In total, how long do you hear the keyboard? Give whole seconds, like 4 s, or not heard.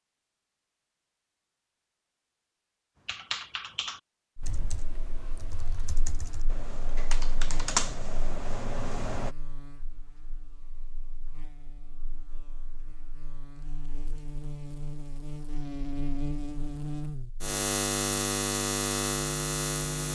6 s.